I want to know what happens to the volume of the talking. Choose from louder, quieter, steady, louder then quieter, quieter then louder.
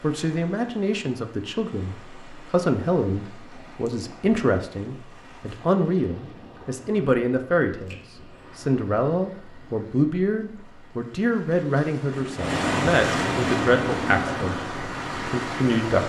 steady.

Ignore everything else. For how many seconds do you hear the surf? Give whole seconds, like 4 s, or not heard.
16 s.